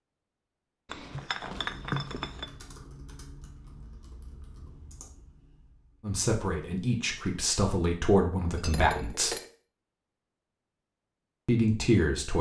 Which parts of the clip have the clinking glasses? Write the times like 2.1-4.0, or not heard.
0.8-2.5, 8.4-9.6.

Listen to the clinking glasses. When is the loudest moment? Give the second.
2 s.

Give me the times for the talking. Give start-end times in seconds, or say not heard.
6.0-9.3, 11.4-12.3.